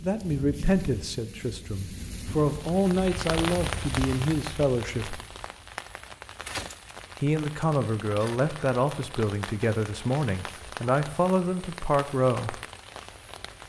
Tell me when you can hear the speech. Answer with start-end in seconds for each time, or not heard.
0.0-5.2, 7.2-12.6.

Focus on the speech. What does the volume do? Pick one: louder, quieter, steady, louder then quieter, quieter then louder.
steady.